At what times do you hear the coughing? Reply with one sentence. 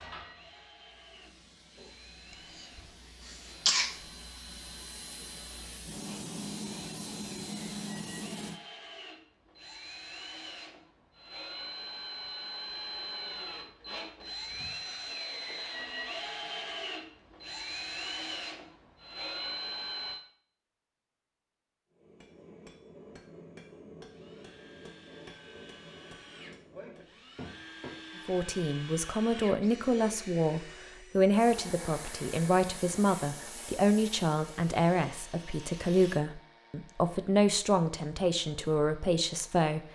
The coughing can be heard from 2.5 to 4.0 s.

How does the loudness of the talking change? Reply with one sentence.
The loudness of the talking stays about the same.